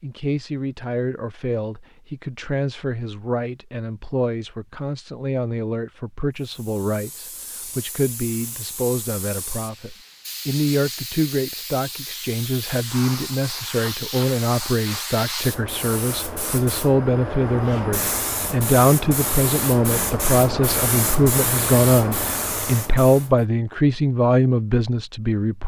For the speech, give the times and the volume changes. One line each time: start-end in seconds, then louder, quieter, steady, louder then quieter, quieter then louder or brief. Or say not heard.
0.0-25.6 louder.